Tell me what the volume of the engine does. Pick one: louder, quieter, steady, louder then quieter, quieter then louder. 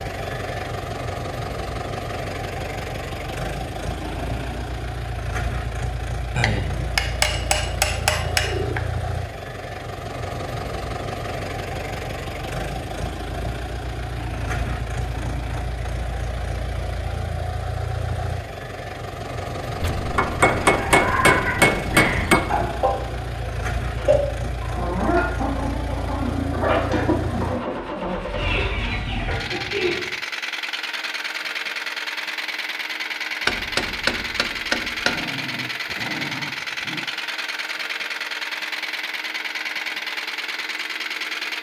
steady.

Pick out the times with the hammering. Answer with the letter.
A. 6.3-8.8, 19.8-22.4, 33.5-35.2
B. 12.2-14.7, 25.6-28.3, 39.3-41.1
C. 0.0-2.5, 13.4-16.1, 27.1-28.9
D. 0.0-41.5
A.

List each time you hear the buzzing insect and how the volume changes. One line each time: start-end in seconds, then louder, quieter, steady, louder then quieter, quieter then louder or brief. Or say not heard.
not heard.